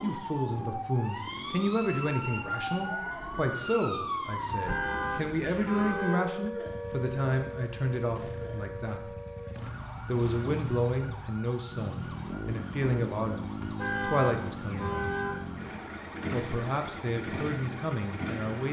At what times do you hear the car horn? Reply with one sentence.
You can hear the car horn from 4.5 to 6.3 s and from 13.6 to 15.4 s.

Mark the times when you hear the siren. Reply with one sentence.
You can hear the siren from 0.0 to 18.6 s.